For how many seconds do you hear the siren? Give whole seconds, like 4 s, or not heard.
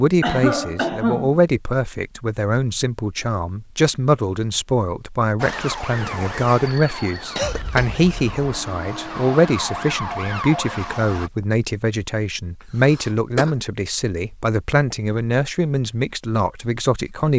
6 s.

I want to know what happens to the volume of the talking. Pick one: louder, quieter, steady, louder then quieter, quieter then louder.
steady.